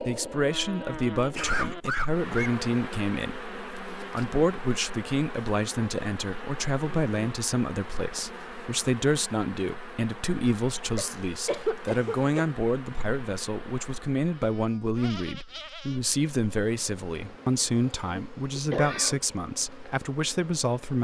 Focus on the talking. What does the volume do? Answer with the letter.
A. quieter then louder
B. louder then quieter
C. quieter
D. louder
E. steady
E.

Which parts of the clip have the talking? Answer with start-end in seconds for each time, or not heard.
0.0-20.9.